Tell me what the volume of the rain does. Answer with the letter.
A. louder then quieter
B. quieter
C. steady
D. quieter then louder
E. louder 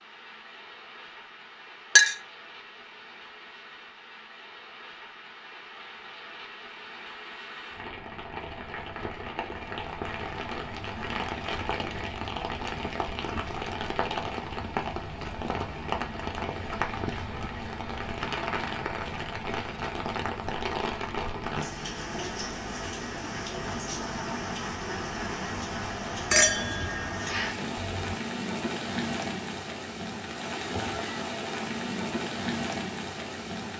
E.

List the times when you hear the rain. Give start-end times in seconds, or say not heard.
0.0-33.7.